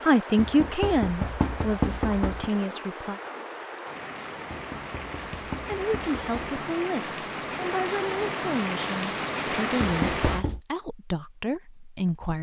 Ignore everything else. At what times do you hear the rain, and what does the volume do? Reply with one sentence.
You can hear the rain from 0.0 to 10.4 s, getting louder.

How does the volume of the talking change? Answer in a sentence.
The loudness of the talking goes down.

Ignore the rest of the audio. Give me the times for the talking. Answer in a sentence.
You can hear the talking from 0.0 to 3.2 s and from 5.7 to 12.3 s.